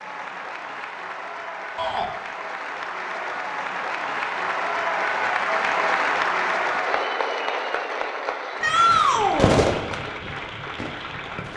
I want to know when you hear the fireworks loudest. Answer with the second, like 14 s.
10 s.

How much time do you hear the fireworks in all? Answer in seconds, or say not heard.
3 s.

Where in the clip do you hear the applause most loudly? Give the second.
6 s.